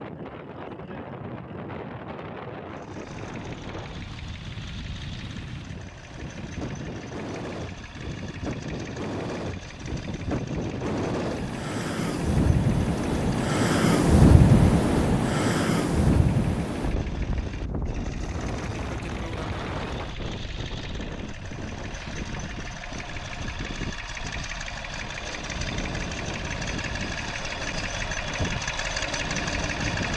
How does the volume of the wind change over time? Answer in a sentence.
The loudness of the wind goes up, then down.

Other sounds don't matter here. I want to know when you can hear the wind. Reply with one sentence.
The wind can be heard from 0.0 to 30.1 s.